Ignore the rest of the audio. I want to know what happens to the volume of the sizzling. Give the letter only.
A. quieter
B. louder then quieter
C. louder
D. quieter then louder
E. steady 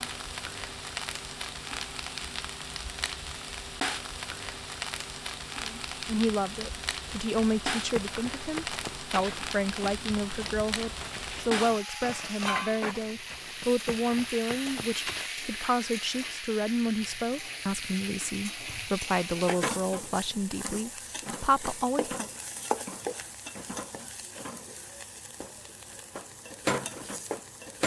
E.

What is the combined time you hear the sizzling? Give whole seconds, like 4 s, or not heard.
28 s.